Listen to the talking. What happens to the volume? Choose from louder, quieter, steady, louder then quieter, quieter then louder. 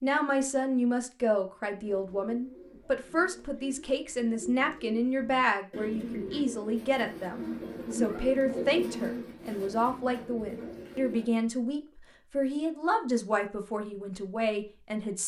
steady.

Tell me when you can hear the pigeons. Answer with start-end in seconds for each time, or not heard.
1.8-11.4.